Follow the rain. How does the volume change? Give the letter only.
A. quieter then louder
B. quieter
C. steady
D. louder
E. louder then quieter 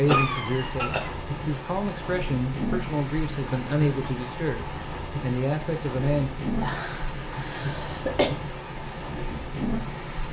C.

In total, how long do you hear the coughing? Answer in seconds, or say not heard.
3 s.